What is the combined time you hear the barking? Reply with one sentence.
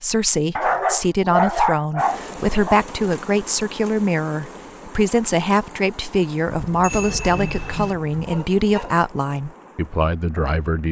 You can hear the barking for 5 seconds altogether.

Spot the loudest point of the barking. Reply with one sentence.
The loudest moment of the barking is at 2 seconds.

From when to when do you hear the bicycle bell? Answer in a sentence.
You can hear the bicycle bell from 6.8 to 8.0 s.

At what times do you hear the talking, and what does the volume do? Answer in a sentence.
The talking can be heard from 0.0 to 10.8 s, at a steady volume.